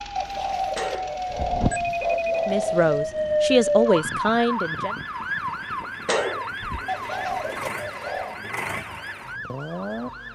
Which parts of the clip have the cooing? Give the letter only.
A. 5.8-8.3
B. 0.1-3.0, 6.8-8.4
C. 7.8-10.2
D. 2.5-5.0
B.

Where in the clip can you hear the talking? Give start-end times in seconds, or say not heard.
2.5-5.0.